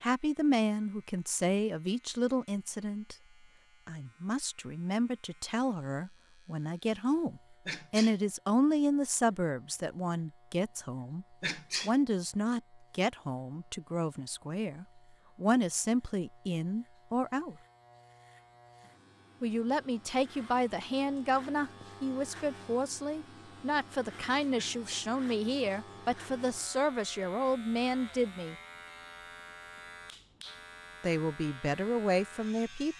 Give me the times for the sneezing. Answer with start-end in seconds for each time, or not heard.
7.7-8.2, 11.4-11.9, 24.6-25.1.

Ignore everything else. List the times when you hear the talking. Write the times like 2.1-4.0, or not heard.
0.0-3.1, 3.9-17.6, 19.4-28.6, 31.0-32.9.